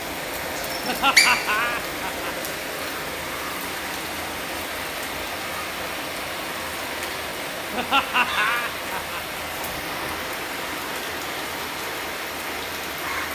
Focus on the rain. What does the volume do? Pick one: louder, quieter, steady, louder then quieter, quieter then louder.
steady.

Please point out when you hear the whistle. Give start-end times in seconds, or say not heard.
0.6-1.3.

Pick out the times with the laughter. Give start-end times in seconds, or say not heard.
0.8-2.5, 7.7-9.4.